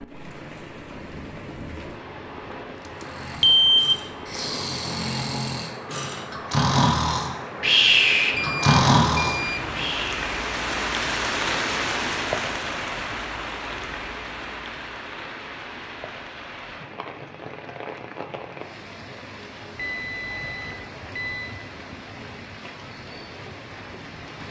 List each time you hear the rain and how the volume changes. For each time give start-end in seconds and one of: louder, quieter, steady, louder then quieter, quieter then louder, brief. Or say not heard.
0.0-24.4 louder then quieter.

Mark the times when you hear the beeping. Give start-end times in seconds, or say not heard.
3.4-4.0, 8.3-9.9, 19.8-21.6.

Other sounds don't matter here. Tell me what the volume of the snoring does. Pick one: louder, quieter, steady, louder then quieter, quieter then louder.
louder.